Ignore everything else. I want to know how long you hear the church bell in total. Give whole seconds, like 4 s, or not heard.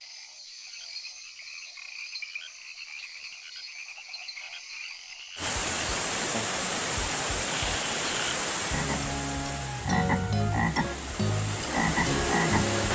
not heard.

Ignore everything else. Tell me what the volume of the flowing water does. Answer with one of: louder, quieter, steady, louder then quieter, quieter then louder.
quieter then louder.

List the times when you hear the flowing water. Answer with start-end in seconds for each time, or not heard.
5.3-12.8.